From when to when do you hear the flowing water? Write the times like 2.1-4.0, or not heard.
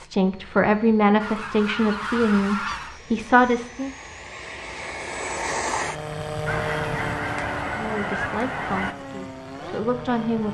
not heard.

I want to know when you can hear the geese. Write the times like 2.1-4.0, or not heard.
1.2-3.0, 6.5-8.9.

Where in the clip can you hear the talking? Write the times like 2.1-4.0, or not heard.
0.0-3.9, 7.8-10.5.